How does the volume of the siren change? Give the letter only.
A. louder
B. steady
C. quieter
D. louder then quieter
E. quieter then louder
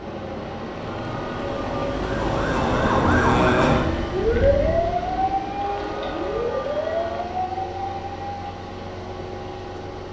C.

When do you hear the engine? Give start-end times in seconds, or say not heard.
0.0-10.0.